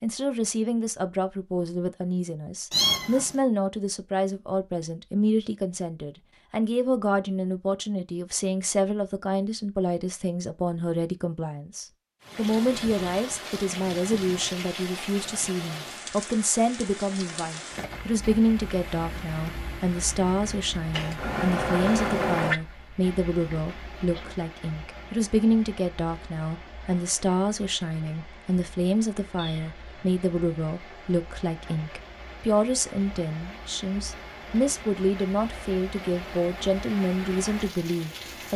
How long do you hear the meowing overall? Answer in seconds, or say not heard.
3 s.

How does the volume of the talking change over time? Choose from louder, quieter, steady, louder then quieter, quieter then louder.
steady.